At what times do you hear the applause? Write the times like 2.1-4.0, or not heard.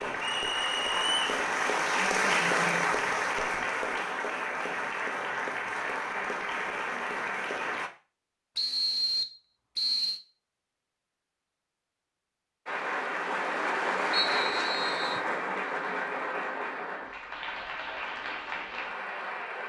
0.0-7.9, 12.7-19.6.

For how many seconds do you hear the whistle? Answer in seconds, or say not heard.
4 s.